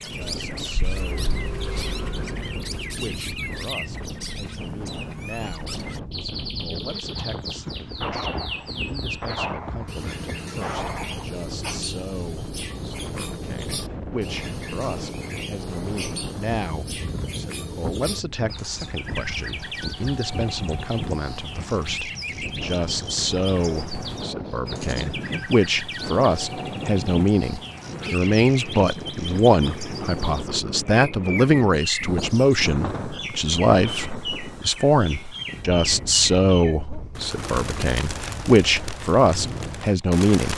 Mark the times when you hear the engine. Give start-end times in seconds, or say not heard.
0.0-3.1.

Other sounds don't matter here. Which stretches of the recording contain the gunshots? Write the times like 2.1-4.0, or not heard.
7.2-11.8.